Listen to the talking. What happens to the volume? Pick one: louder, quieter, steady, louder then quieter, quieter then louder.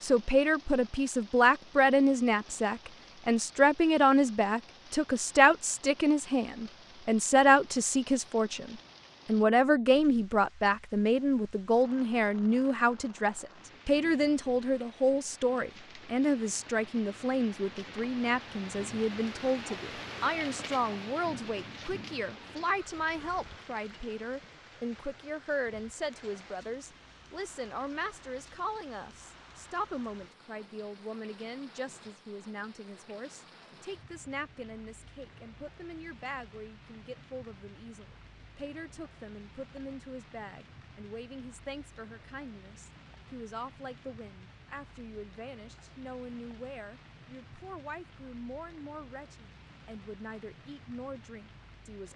quieter.